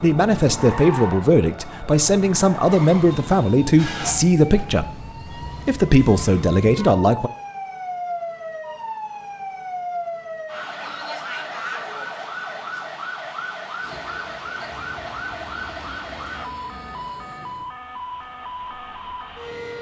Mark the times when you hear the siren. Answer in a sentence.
You can hear the siren from 0.0 to 19.7 s.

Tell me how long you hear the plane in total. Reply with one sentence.
The plane can be heard for 6 seconds in total.